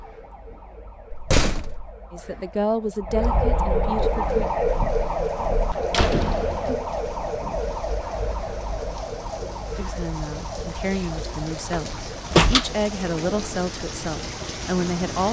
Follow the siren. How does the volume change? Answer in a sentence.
The volume of the siren goes up, then down.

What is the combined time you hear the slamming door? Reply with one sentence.
You can hear the slamming door for 3 seconds altogether.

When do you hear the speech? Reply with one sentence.
You can hear the speech from 2.1 to 4.5 s and from 9.8 to 15.2 s.